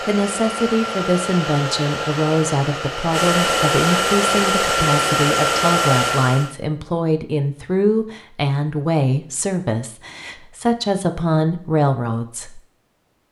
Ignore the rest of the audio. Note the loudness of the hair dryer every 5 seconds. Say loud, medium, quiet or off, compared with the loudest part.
loud, loud, off.